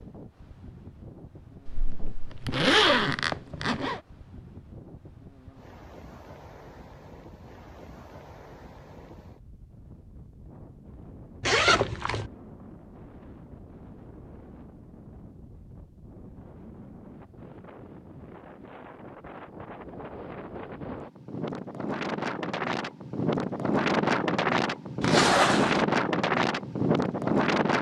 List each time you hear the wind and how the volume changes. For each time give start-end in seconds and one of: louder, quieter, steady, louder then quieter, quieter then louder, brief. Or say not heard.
0.0-27.7 louder.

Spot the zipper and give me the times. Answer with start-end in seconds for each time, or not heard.
1.6-4.0, 11.4-12.3, 25.0-25.9.